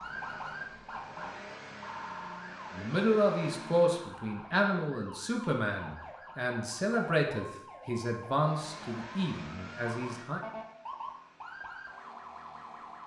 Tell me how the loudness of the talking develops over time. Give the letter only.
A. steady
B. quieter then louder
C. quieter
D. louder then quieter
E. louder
C.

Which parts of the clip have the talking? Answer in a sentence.
The talking can be heard from 2.8 to 10.4 s.